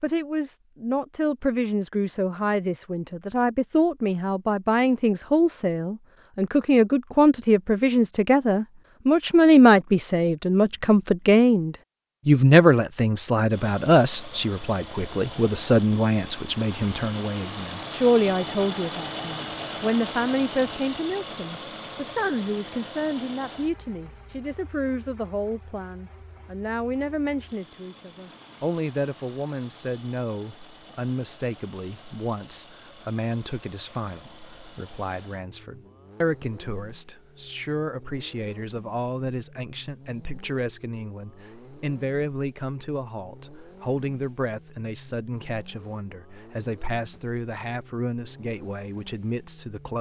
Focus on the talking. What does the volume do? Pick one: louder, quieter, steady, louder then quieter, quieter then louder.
quieter.